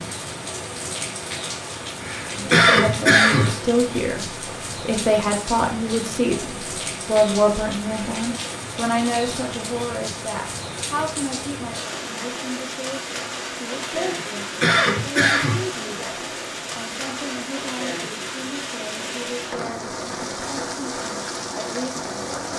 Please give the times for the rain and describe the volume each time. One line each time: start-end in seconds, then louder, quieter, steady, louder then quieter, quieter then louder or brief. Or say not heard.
0.0-22.5 steady.